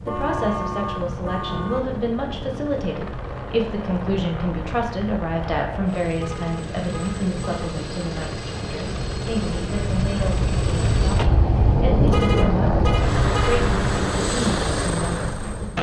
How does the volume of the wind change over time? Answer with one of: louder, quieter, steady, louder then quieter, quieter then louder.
louder.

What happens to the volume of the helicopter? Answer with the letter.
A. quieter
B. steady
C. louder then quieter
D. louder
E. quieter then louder
D.